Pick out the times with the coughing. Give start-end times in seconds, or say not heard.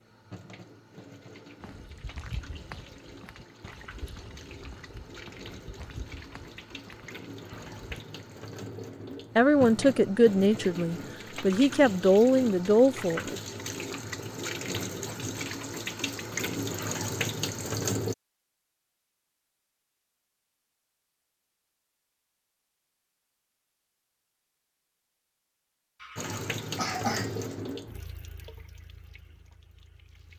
26.0-27.4.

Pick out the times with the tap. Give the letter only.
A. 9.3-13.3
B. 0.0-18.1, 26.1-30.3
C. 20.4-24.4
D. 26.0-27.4
B.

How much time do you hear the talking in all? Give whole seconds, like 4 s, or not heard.
4 s.